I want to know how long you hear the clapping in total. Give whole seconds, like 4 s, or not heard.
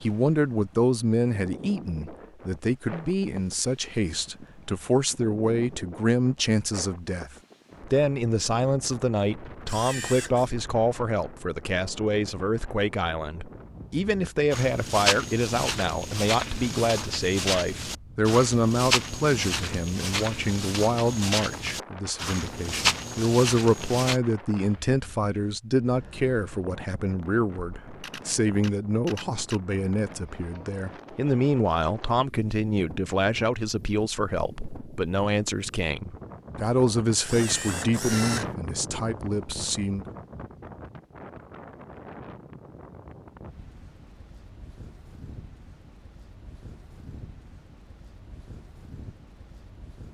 not heard.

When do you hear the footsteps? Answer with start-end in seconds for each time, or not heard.
14.5-24.2.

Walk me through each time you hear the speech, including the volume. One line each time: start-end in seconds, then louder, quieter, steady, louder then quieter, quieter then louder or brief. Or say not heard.
0.0-40.0 steady.